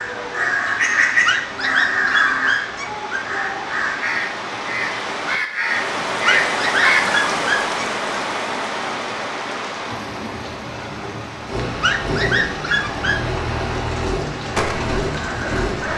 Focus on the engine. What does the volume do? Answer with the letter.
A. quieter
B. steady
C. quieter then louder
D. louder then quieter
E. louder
B.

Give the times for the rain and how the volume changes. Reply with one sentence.
The rain can be heard from 0.0 to 15.9 s, getting louder then quieter.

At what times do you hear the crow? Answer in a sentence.
The crow can be heard from 0.0 to 7.0 s and from 14.4 to 15.9 s.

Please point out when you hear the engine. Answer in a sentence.
The engine can be heard from 11.4 to 15.9 s.